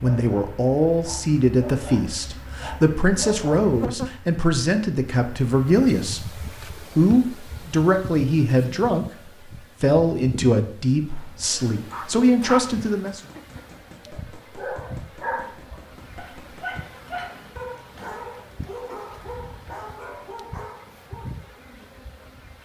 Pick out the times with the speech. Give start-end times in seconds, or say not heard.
0.0-9.1, 9.8-13.2.